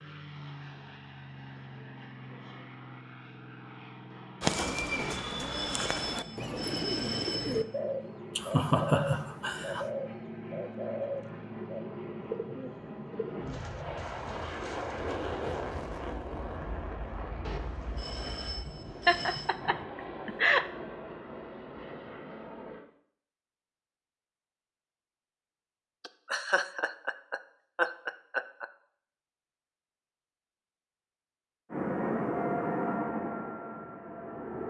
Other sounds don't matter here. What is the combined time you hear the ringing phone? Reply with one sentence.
The ringing phone can be heard for 5 seconds in total.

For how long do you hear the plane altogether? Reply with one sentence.
You can hear the plane for 26 seconds altogether.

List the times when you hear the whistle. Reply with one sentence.
The whistle can't be heard in this clip.